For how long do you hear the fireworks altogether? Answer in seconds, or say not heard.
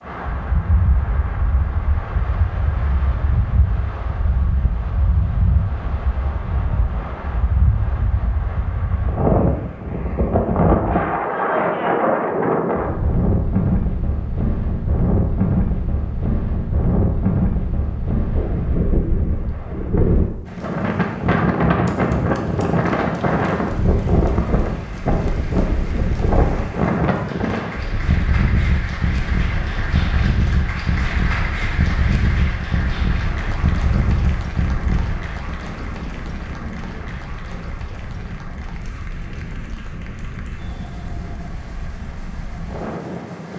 not heard.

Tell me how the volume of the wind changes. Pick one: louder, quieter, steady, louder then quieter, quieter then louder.
louder then quieter.